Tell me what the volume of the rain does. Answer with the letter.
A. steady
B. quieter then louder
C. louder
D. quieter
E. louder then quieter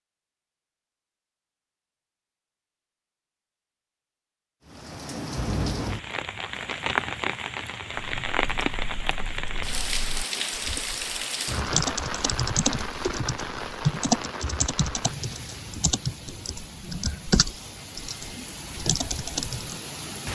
D.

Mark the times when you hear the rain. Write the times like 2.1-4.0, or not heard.
4.7-20.3.